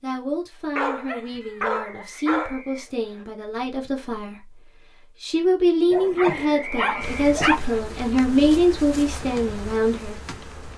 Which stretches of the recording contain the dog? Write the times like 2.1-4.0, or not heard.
0.8-2.6, 5.9-7.6.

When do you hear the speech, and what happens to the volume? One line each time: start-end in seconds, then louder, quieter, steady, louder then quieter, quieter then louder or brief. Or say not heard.
0.0-10.2 louder.